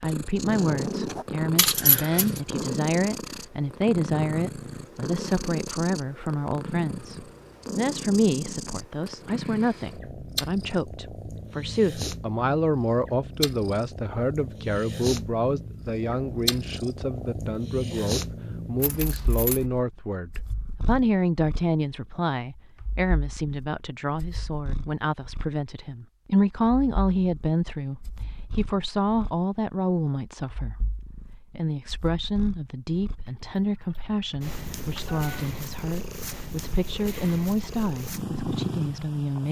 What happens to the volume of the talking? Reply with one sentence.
The volume of the talking stays about the same.